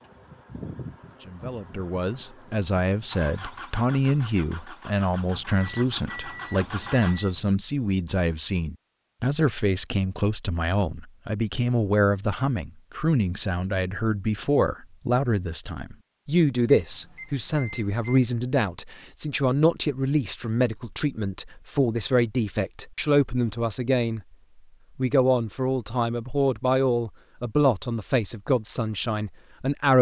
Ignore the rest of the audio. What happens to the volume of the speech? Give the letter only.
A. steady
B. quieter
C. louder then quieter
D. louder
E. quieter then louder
A.